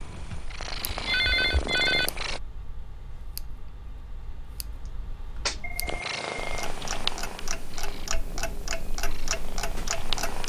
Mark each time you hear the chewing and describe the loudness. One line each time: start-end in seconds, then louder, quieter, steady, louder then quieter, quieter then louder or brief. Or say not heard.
not heard.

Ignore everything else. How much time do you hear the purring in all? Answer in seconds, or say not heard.
7 s.